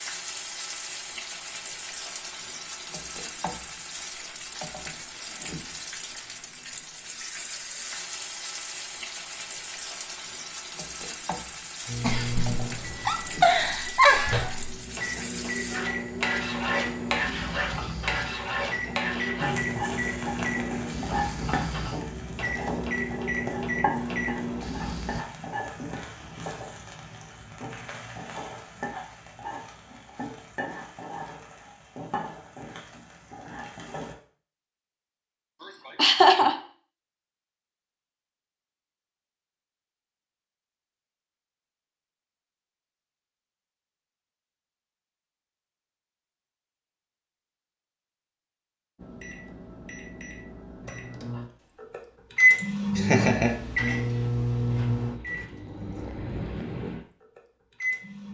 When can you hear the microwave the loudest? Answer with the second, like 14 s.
53 s.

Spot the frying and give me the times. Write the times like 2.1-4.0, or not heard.
0.0-34.1.